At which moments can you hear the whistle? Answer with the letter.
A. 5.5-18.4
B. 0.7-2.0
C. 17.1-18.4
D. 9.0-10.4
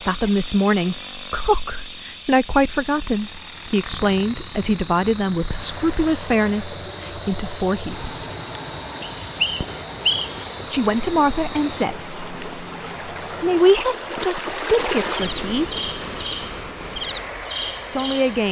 D.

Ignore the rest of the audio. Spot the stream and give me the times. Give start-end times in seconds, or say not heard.
5.5-18.4.